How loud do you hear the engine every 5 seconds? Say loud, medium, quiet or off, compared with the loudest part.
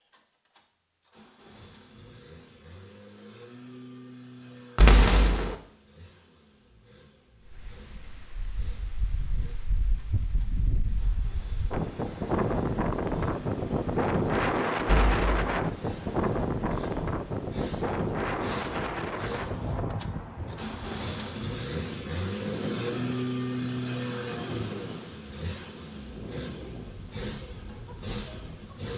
quiet, quiet, quiet, medium, loud, medium.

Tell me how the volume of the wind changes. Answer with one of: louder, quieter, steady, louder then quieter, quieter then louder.
louder then quieter.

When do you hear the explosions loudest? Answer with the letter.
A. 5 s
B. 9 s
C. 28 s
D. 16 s
A.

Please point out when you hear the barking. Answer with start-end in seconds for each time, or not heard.
not heard.